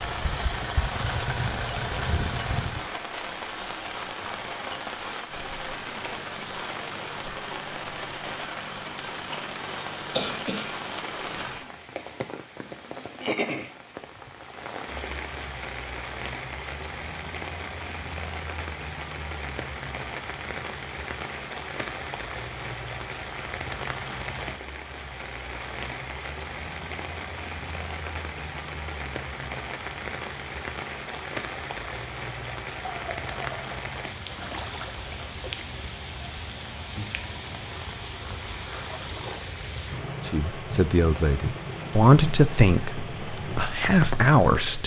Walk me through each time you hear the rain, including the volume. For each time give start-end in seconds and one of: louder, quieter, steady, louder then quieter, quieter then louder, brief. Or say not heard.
0.0-44.8 steady.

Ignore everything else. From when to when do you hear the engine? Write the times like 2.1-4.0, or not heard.
0.0-2.9.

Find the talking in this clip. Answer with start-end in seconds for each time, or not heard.
40.2-44.8.